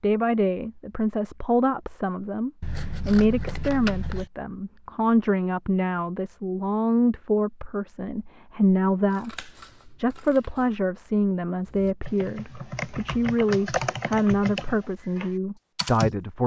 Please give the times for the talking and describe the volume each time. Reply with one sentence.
The talking can be heard from 0.0 to 16.4 s, at a steady volume.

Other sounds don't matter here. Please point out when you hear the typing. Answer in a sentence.
You can hear the typing from 11.7 to 16.1 s.